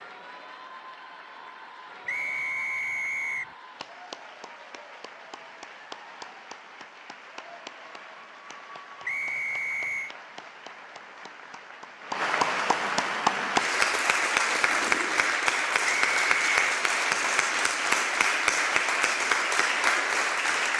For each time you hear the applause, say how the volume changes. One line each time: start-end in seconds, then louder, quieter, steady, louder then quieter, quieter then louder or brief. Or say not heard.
0.0-20.7 louder.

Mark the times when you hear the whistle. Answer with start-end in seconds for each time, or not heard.
2.0-3.5, 9.1-10.2, 15.8-16.8.